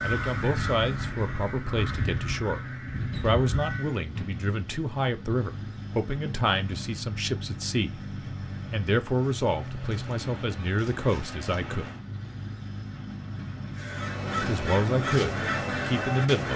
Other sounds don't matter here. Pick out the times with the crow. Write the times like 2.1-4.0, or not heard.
0.0-4.0, 13.8-16.5.